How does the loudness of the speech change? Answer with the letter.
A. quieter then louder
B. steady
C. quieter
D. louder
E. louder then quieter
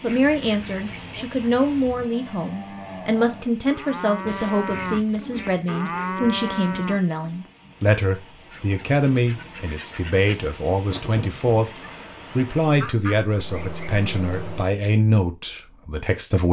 B.